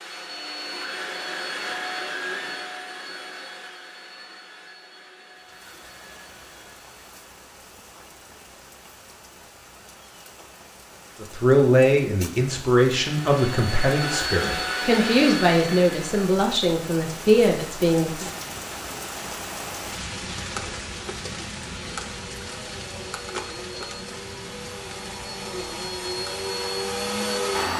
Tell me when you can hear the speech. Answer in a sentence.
The speech can be heard from 11.2 to 18.3 s.